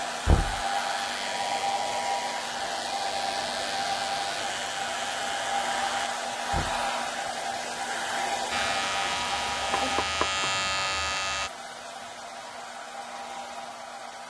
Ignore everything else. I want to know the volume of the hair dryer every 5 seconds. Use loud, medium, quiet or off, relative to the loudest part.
loud, loud, medium.